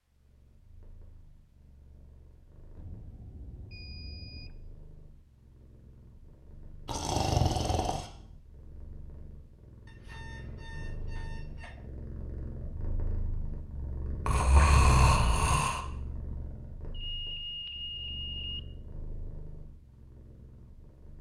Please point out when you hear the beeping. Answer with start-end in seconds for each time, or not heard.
2.8-4.5, 9.8-11.8, 16.9-18.6.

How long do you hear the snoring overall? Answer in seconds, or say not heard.
3 s.